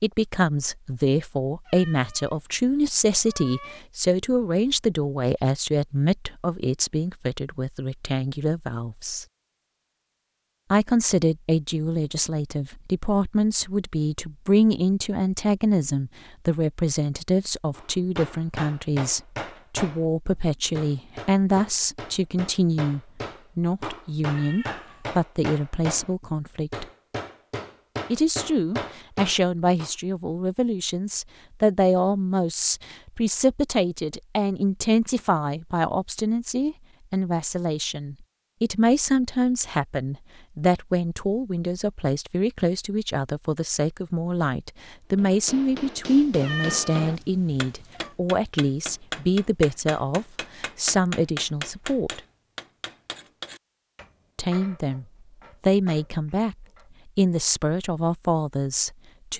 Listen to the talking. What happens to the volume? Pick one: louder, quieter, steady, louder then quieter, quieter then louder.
steady.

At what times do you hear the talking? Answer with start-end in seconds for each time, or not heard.
0.0-9.2, 10.7-26.9, 28.1-52.2, 54.4-59.3.